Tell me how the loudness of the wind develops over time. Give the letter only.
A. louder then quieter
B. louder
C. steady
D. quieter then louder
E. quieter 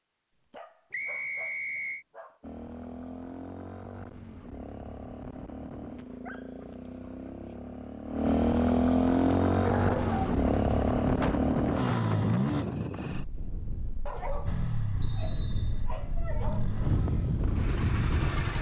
D.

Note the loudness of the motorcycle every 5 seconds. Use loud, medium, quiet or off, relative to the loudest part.
quiet, loud, loud, medium.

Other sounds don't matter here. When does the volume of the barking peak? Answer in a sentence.
The loudest moment of the barking is at 10 seconds.